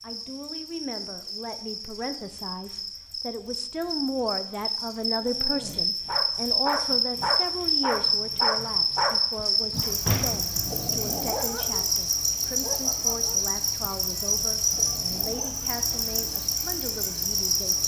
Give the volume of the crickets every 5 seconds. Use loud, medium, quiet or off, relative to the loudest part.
medium, loud, loud, loud.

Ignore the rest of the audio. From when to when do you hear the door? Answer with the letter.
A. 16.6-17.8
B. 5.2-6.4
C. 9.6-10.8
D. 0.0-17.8
C.